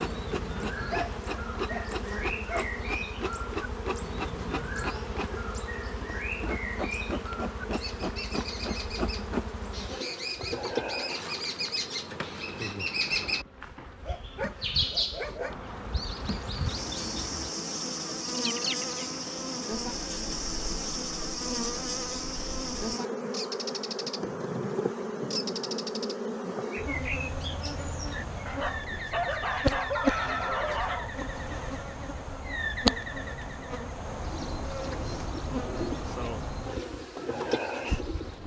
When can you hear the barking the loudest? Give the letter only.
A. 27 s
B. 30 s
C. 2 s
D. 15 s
B.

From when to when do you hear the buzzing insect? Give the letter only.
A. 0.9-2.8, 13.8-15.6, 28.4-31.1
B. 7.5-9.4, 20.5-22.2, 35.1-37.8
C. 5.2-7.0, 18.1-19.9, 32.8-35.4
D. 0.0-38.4
D.